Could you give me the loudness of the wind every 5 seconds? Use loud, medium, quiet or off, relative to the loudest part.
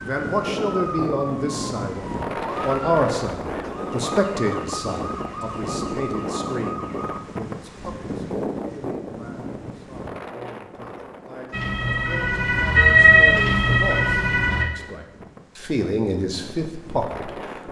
loud, loud, medium, medium.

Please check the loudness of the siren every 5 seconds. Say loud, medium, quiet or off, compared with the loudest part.
quiet, quiet, loud, off.